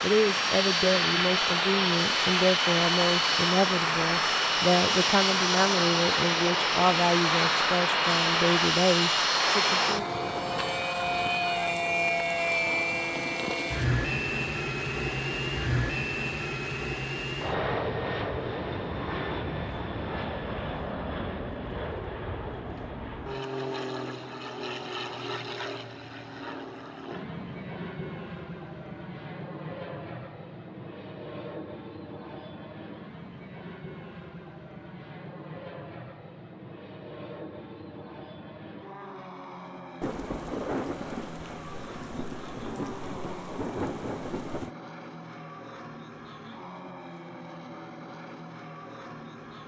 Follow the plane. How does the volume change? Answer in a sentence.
The volume of the plane goes down.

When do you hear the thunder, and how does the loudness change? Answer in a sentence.
You can hear the thunder from 40.0 to 44.7 s, getting quieter then louder.